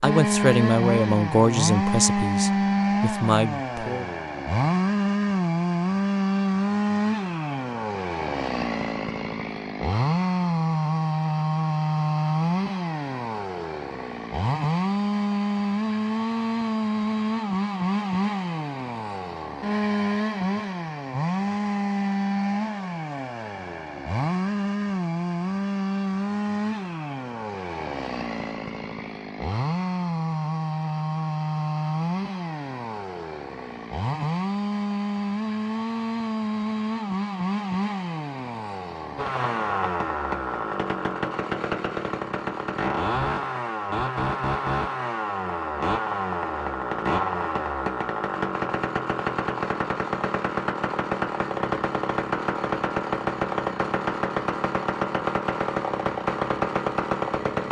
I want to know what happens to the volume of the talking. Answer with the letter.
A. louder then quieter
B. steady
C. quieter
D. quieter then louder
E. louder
D.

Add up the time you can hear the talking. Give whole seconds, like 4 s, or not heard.
4 s.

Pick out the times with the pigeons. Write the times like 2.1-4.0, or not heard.
not heard.